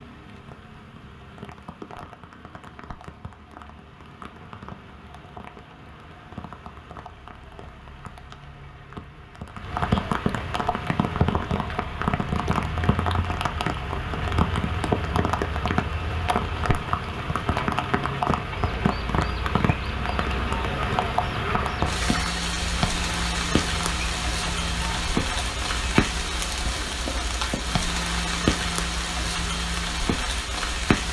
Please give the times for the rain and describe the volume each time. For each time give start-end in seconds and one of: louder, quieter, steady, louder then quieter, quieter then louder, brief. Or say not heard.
0.0-31.0 louder.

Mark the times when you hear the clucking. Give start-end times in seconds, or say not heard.
18.4-26.1.